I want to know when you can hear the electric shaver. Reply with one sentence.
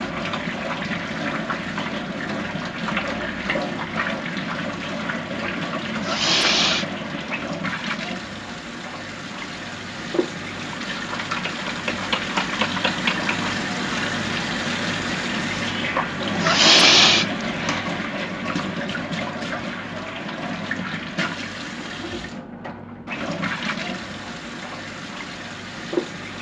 You can't hear the electric shaver here.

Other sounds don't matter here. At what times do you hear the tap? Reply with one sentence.
You can hear the tap from 0.0 to 26.3 s.